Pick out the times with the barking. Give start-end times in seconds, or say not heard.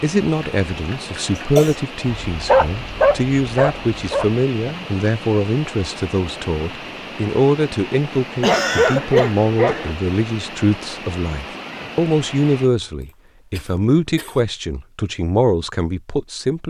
2.3-4.8, 8.4-9.9.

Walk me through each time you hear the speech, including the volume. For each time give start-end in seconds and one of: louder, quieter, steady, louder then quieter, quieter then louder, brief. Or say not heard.
0.0-16.6 steady.